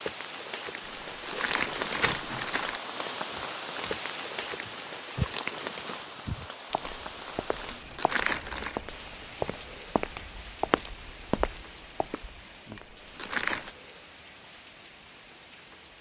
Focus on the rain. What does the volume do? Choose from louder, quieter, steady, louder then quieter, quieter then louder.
quieter.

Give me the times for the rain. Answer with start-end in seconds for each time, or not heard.
0.0-15.9.